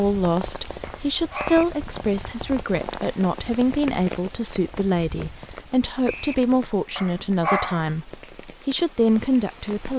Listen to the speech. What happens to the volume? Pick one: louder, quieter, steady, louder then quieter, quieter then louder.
steady.